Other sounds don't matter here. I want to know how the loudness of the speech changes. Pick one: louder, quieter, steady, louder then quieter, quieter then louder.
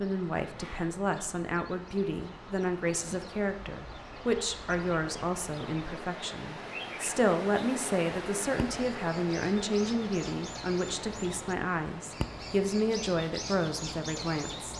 steady.